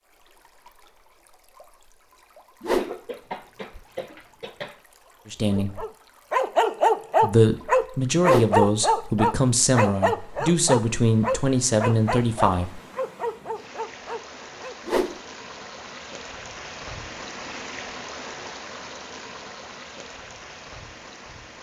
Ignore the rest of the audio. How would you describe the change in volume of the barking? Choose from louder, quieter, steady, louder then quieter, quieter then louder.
quieter.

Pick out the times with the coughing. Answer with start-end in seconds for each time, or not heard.
2.8-4.8.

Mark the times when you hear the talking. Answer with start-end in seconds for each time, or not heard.
5.2-5.8, 7.2-12.8.